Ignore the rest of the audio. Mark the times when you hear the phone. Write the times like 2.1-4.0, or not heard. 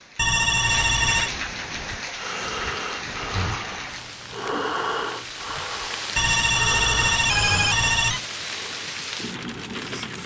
0.1-1.4, 6.2-8.2.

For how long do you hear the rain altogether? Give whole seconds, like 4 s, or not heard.
10 s.